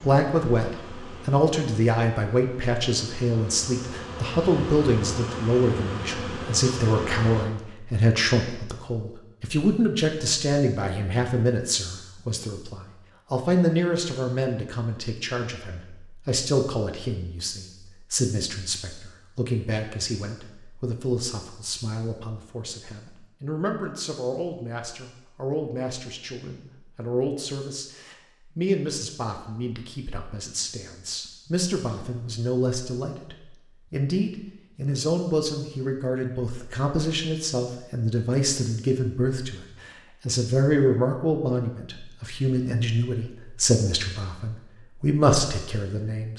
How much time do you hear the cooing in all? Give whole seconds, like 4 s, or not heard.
not heard.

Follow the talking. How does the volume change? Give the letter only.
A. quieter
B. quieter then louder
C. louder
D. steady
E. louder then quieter
B.